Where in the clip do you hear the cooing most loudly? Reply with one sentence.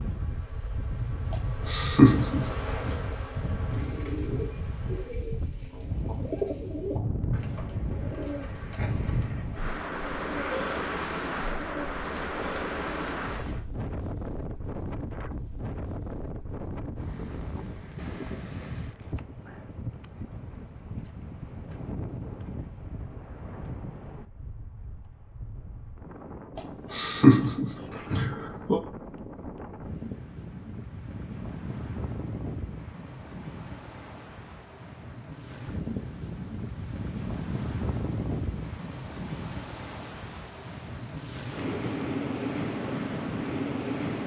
The volume of the cooing peaks at 6 seconds.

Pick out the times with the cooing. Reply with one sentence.
The cooing can be heard from 3.7 to 13.6 s.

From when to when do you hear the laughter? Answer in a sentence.
The laughter can be heard from 1.3 to 3.0 s and from 26.6 to 28.8 s.